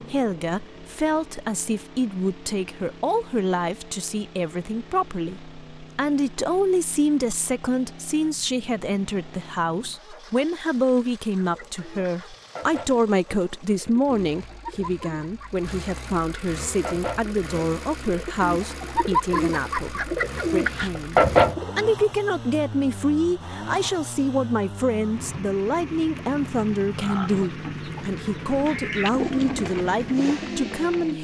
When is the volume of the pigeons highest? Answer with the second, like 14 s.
21 s.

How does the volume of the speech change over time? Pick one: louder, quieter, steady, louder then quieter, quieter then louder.
steady.